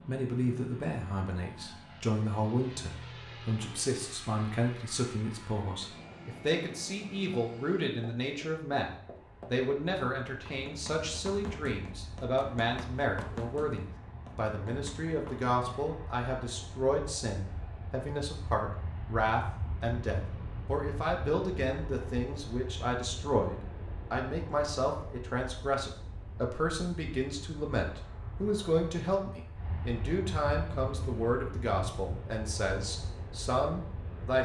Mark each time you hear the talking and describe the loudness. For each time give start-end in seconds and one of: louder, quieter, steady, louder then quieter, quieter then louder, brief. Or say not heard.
0.1-34.3 steady.